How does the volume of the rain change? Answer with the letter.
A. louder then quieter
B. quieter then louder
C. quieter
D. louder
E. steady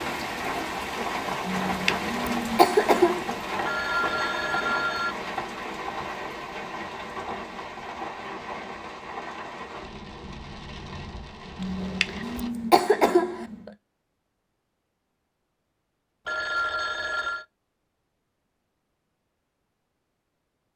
C.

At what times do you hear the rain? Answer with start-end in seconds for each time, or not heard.
0.0-12.5.